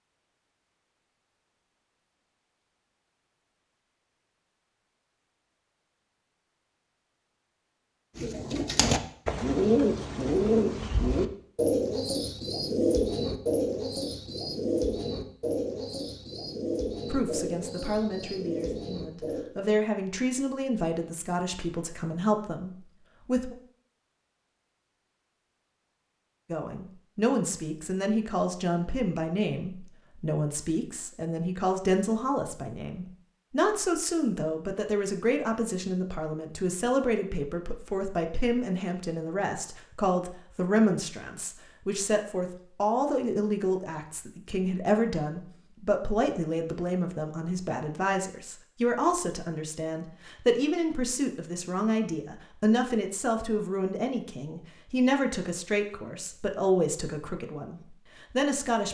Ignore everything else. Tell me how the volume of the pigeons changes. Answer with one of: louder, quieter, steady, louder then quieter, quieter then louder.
quieter.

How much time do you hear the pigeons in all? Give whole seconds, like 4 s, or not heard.
11 s.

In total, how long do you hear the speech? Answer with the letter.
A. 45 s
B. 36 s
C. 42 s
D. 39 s
D.